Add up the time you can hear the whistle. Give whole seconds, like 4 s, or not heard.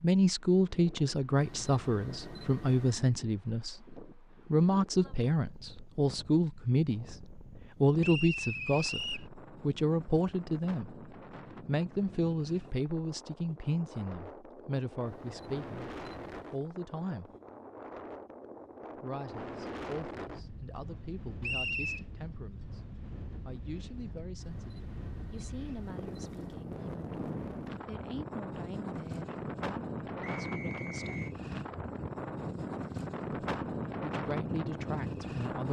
3 s.